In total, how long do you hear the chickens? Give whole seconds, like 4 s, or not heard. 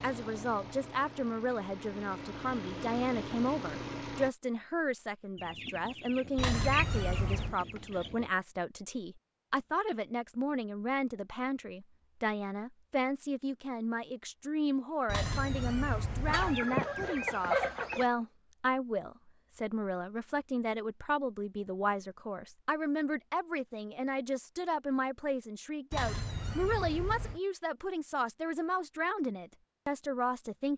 5 s.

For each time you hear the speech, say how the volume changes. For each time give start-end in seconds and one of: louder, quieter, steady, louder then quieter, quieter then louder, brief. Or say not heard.
0.0-30.7 steady.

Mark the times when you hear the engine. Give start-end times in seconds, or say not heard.
0.0-4.3.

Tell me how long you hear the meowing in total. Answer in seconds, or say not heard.
4 s.